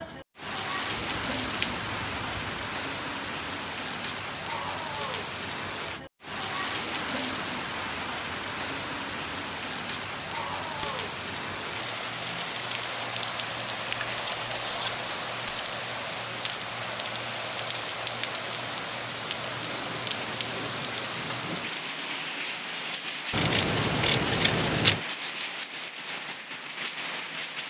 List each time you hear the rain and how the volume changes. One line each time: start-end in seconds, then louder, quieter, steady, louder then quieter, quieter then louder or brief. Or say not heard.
0.0-27.6 steady.